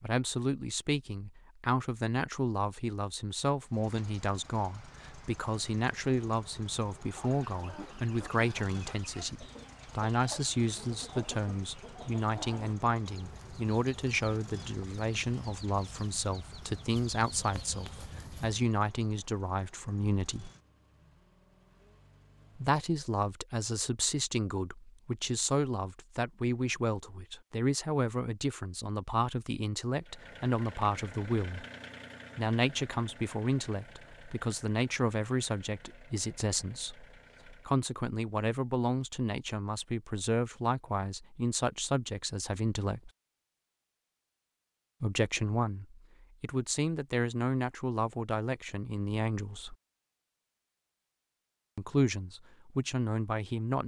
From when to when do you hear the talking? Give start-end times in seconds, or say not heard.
0.0-20.5, 22.6-31.6, 32.4-43.1, 45.0-49.8, 51.8-53.8.